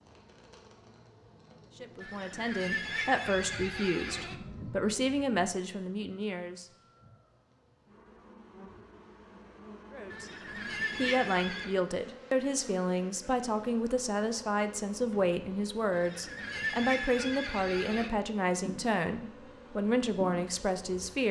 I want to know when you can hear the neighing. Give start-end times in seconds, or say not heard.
2.0-4.4, 10.1-11.8, 15.9-18.1.